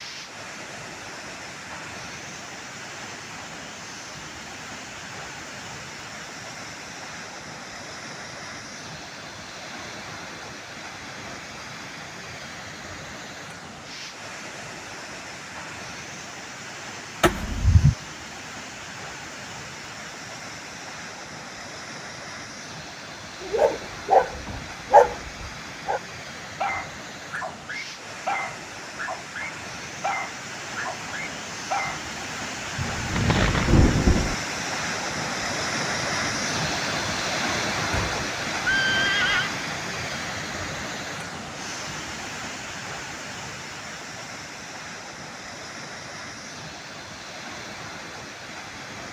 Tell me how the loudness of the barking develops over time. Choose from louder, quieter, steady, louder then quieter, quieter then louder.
quieter.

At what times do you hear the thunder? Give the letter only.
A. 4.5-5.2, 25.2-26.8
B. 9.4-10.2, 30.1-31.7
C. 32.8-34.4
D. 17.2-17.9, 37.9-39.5
C.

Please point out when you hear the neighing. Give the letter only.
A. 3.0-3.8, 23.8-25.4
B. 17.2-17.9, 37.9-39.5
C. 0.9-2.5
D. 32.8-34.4
B.